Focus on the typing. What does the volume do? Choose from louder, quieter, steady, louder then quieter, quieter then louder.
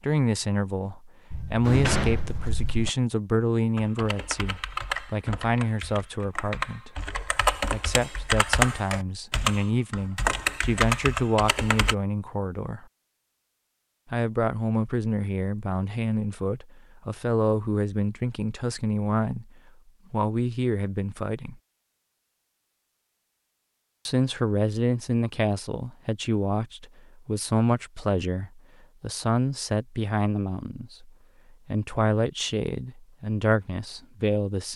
louder.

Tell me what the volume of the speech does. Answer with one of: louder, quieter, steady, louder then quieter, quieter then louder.
steady.